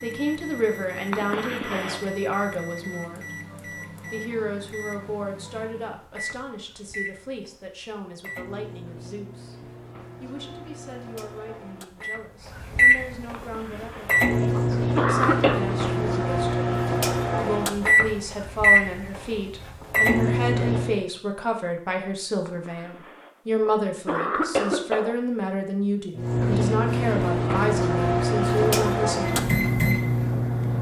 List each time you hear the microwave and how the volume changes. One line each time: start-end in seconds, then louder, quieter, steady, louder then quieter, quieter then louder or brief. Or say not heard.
0.0-21.1 louder
26.1-30.7 steady.